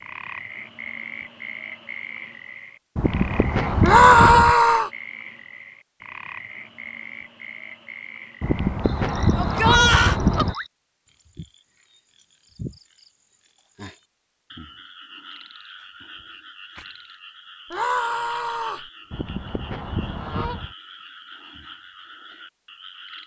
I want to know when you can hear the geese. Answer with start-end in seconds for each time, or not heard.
3.0-4.5, 8.4-10.6, 19.1-20.8.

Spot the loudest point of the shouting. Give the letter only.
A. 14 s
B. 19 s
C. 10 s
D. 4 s
D.